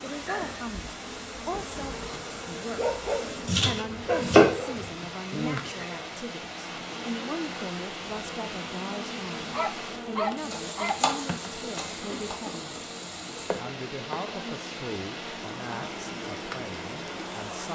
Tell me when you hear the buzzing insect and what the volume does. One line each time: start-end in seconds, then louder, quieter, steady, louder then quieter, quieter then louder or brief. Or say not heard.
0.0-17.7 steady.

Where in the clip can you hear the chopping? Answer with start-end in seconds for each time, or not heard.
3.5-4.9, 10.5-12.3.